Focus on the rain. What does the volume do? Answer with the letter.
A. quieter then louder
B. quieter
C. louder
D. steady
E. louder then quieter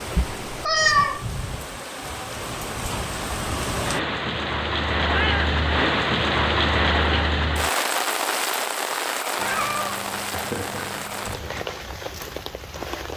E.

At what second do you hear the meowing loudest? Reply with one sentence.
The loudest moment of the meowing is at 1 second.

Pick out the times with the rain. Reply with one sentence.
The rain can be heard from 0.0 to 13.1 s.